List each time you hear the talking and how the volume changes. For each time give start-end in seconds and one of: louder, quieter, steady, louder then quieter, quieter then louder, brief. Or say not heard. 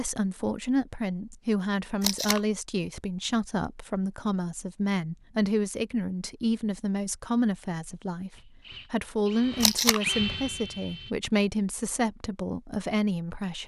0.0-13.6 steady.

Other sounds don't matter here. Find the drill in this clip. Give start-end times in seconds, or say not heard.
8.3-11.2.